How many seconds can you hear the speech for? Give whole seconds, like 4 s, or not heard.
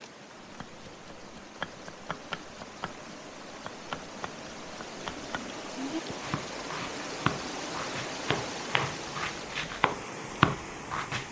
not heard.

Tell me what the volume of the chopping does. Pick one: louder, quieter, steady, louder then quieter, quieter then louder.
louder.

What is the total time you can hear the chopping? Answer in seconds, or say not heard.
11 s.